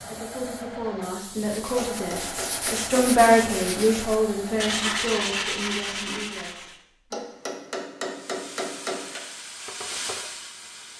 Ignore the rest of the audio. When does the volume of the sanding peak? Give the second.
5 s.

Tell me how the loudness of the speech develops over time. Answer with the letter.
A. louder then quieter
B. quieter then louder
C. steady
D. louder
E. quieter
A.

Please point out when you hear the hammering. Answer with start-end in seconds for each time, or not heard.
1.9-3.2, 7.1-9.2.